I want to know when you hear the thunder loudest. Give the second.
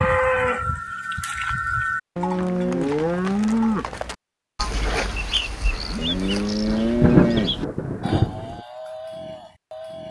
7 s.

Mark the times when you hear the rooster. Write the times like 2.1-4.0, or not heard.
not heard.